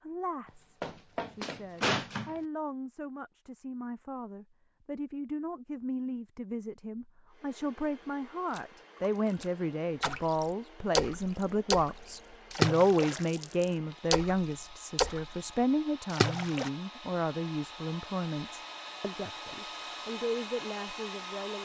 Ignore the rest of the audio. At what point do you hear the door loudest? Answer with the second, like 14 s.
2 s.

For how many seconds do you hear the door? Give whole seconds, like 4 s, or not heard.
2 s.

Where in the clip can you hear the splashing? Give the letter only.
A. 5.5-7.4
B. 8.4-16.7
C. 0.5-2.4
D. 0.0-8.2
B.